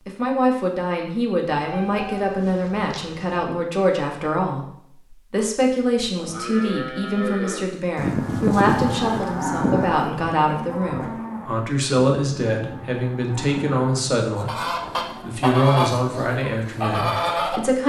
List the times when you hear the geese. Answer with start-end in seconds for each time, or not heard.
14.3-17.6.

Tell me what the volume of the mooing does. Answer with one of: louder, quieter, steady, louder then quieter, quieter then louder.
louder then quieter.